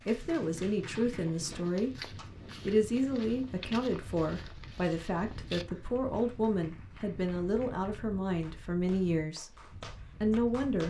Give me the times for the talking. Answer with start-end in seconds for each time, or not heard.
0.1-9.6, 10.2-10.8.